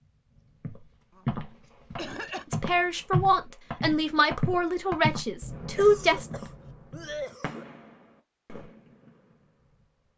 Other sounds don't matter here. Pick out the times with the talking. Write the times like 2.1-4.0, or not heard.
2.5-6.3.